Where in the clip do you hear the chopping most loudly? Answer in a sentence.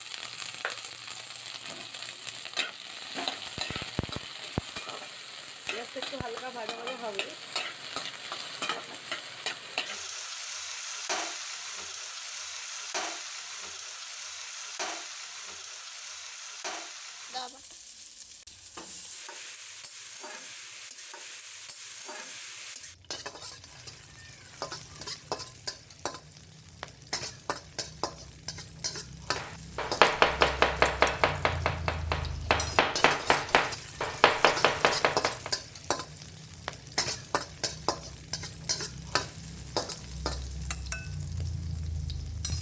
The loudest moment of the chopping is at 30 seconds.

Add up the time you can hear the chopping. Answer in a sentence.
The chopping can be heard for 6 seconds in total.